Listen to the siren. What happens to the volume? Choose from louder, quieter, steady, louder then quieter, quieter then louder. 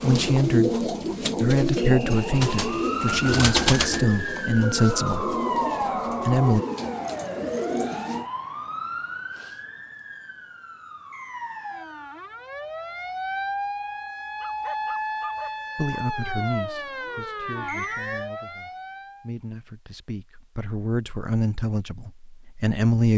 quieter then louder.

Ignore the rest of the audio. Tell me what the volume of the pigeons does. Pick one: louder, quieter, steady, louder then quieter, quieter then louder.
quieter.